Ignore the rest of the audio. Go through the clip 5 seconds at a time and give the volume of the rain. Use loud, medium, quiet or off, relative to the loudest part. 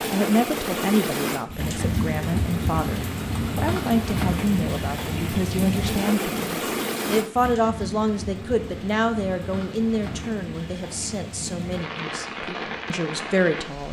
loud, loud, medium.